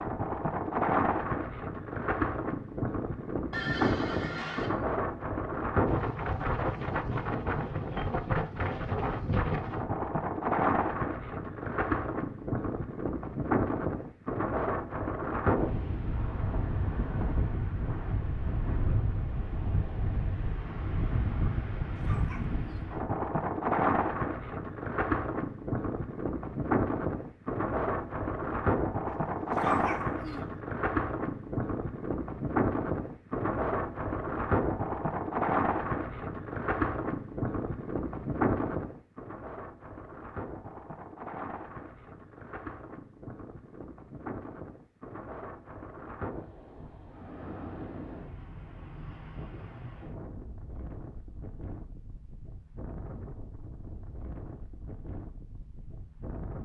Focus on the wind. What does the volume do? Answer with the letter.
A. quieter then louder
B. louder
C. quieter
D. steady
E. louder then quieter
C.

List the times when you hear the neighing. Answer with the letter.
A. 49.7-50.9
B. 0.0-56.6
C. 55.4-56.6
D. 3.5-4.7
D.